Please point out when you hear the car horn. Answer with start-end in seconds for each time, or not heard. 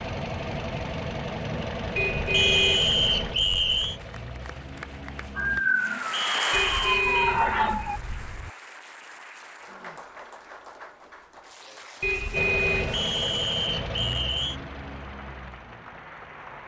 1.9-4.0, 6.5-8.5, 12.0-13.1.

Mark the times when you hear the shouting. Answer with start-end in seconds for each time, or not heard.
not heard.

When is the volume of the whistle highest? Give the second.
3 s.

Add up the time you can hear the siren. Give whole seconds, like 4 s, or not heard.
3 s.